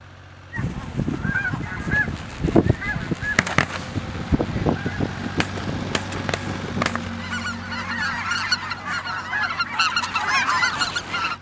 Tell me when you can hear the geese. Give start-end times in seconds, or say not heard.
0.5-11.3.